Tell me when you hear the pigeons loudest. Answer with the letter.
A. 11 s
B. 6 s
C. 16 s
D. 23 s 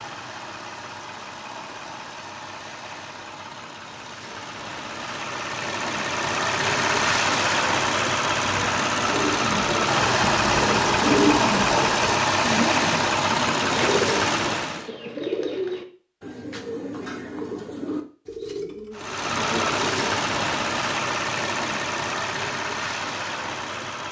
A.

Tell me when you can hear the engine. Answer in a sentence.
The engine can be heard from 0.0 to 14.9 s and from 18.9 to 24.0 s.